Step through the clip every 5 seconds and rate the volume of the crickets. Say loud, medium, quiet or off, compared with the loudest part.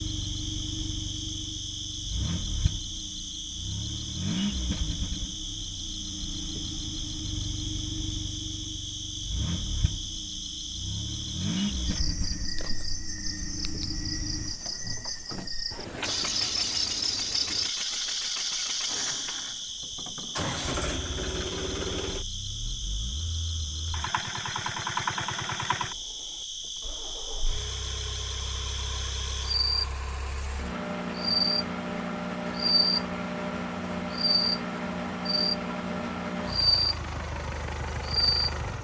medium, medium, medium, medium, medium, medium, loud, loud.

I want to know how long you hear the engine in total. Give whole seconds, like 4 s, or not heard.
39 s.